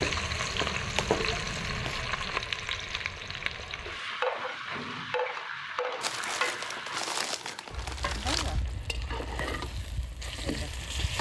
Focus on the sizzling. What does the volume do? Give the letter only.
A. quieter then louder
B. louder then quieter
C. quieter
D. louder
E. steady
C.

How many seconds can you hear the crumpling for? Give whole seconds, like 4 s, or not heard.
4 s.